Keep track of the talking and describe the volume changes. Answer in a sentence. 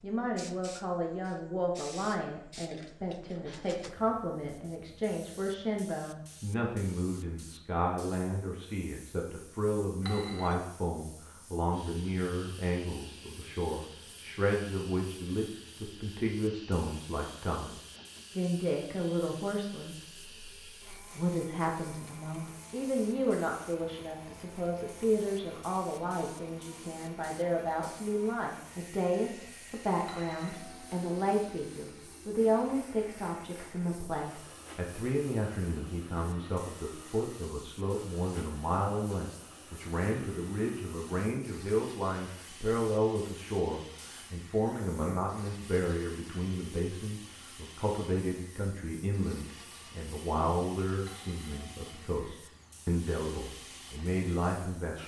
The loudness of the talking stays about the same.